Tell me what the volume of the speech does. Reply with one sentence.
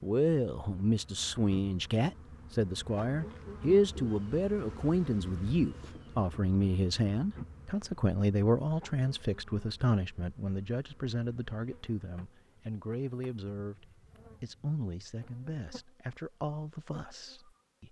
The volume of the speech goes down.